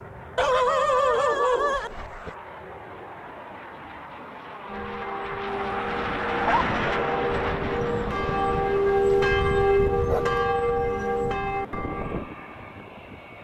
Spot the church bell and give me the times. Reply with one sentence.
The church bell can be heard from 4.7 to 12.3 s.